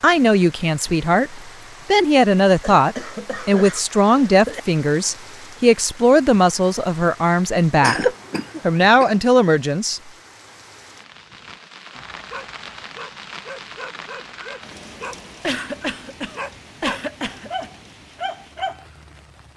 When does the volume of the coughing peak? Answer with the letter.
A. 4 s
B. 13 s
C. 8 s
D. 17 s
C.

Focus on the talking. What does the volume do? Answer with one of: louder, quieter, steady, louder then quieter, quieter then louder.
steady.